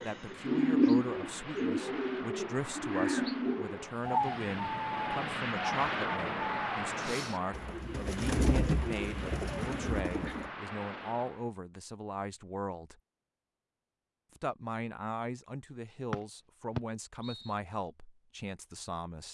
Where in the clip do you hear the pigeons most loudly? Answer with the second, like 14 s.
1 s.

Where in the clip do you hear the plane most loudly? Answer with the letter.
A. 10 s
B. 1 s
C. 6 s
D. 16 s
C.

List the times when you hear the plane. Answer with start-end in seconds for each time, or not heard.
0.0-11.5.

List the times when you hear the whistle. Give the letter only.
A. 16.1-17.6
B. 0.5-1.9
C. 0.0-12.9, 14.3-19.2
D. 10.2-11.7
A.